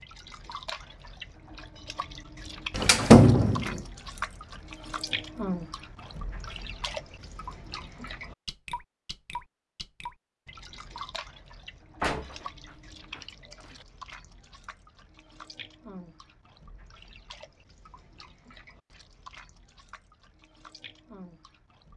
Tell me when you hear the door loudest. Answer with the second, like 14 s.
3 s.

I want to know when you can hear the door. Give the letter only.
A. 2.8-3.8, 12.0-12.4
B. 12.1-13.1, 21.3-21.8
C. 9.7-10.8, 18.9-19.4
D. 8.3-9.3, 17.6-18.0
A.